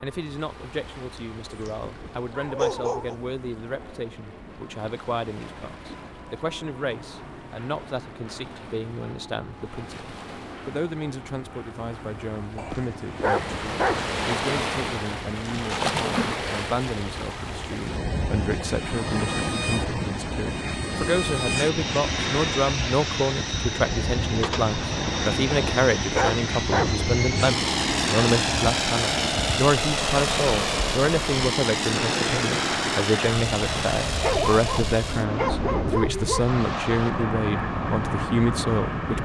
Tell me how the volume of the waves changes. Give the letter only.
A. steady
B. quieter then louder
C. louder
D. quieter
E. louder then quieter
C.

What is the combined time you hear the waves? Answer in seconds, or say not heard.
39 s.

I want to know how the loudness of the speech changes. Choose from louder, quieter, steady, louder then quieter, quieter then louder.
louder.